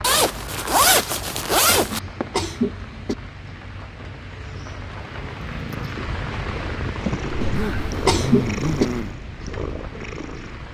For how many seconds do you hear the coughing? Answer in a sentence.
The coughing can be heard for 3 seconds in total.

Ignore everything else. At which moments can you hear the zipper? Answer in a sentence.
You can hear the zipper from 0.0 to 2.0 s and from 7.3 to 9.2 s.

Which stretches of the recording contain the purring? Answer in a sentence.
You can hear the purring from 5.2 to 10.7 s.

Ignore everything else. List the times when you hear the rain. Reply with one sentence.
You can hear the rain from 0.0 to 10.7 s.